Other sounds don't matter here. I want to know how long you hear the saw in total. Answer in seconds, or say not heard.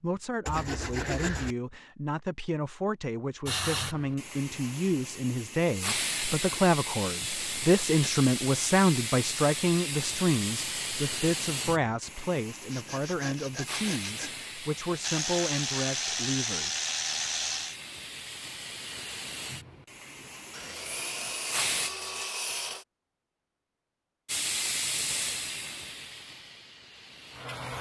5 s.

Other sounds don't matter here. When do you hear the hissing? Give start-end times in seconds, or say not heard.
3.5-21.9, 24.2-27.7.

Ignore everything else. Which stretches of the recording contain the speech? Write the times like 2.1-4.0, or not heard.
0.0-16.7.